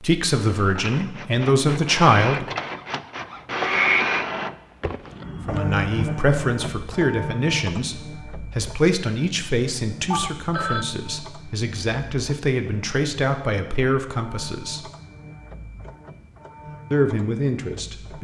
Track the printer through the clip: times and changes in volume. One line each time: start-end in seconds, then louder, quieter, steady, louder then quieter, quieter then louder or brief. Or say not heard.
0.0-18.1 quieter.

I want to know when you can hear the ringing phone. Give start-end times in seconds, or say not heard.
10.1-10.8.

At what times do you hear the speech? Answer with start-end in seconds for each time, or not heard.
0.0-2.5, 5.5-14.8, 16.9-18.1.